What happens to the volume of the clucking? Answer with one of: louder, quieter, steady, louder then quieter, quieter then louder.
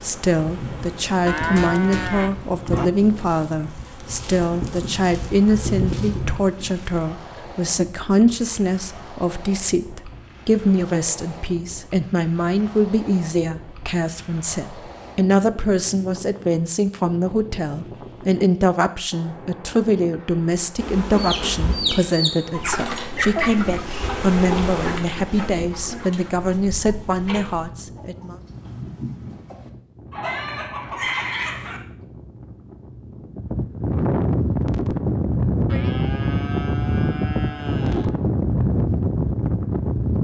quieter then louder.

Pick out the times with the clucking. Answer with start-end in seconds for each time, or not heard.
21.1-31.8.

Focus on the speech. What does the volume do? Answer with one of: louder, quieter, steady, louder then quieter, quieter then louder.
steady.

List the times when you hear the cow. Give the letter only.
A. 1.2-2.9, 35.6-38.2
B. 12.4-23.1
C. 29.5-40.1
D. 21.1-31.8
A.